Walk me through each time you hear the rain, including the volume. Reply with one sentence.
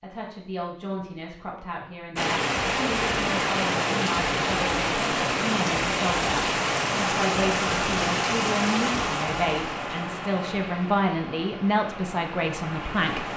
The rain can be heard from 2.1 to 13.3 s, getting quieter.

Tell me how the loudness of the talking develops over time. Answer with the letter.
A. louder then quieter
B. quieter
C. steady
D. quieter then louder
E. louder
E.